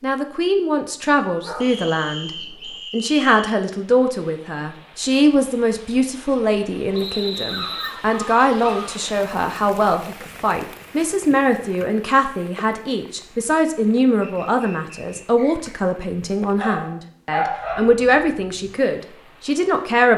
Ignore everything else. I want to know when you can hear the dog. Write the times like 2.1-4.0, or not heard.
1.4-2.8, 7.5-8.9, 16.6-17.9.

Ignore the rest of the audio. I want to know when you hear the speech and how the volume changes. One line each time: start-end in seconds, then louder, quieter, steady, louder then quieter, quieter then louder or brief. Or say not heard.
0.0-20.1 steady.